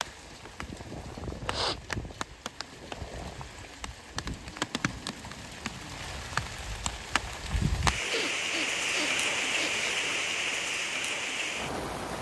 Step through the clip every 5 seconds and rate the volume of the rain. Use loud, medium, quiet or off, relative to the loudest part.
medium, loud, loud.